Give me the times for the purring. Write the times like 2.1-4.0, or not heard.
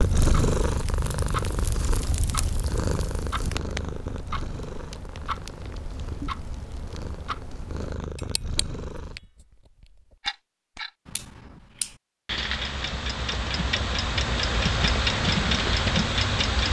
0.0-9.2.